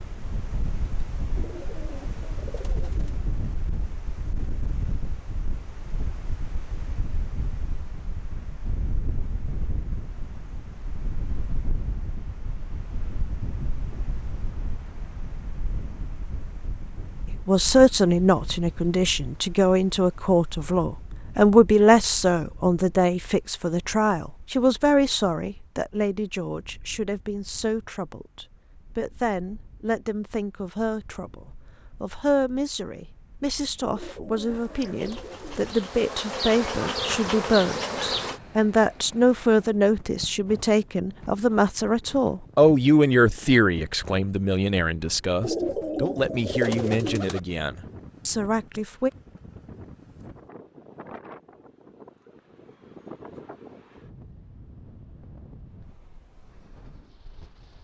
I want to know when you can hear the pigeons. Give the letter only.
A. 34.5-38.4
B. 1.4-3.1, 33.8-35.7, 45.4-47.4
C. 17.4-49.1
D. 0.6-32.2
B.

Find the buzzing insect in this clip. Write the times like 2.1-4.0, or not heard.
34.5-38.4.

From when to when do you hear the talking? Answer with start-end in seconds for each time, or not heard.
17.4-49.1.